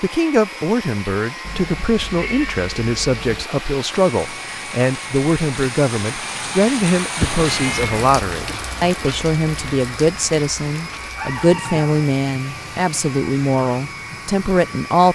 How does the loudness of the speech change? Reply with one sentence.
The loudness of the speech stays about the same.